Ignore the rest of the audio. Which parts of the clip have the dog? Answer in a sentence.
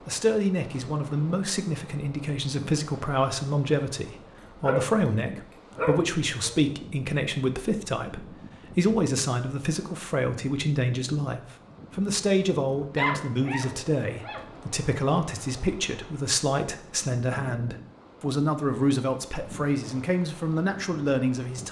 You can hear the dog from 4.3 to 6.6 s and from 12.9 to 14.4 s.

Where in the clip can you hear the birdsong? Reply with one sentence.
You can't hear the birdsong here.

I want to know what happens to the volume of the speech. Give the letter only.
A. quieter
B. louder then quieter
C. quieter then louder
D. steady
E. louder
D.